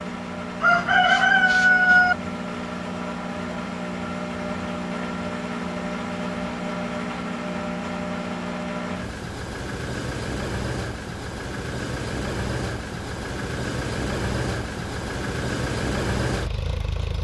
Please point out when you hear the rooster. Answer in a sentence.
You can hear the rooster from 0.6 to 2.1 s.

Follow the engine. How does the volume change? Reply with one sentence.
The loudness of the engine stays about the same.